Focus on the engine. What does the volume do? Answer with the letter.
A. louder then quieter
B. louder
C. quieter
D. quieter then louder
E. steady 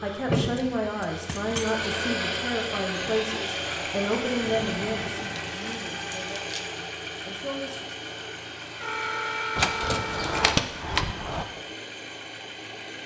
C.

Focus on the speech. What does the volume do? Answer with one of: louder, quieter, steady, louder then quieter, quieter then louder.
quieter.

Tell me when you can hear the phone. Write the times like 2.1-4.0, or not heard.
8.8-10.5.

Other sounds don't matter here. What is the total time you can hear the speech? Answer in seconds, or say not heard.
8 s.